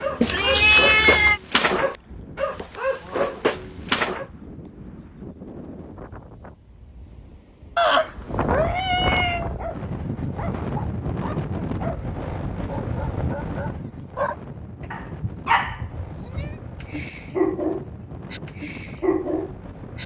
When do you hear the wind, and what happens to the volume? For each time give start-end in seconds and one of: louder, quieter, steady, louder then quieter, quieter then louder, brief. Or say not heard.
0.0-20.0 louder then quieter.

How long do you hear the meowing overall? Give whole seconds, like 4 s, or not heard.
5 s.